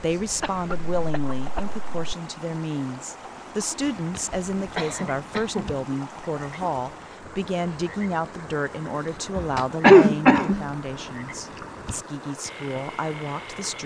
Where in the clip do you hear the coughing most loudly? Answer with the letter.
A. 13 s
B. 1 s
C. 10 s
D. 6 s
C.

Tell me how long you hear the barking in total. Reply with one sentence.
The barking can't be heard in this clip.